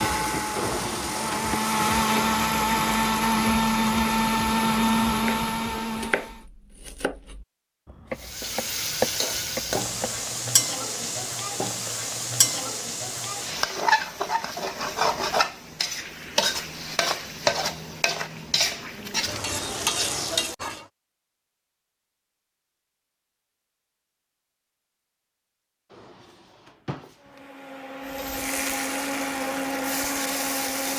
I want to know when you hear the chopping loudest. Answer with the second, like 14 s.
9 s.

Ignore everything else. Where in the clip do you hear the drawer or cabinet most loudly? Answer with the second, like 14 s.
1 s.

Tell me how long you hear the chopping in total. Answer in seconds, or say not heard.
5 s.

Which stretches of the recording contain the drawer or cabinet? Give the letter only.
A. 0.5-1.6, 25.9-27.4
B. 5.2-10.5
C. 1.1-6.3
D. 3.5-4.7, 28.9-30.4
A.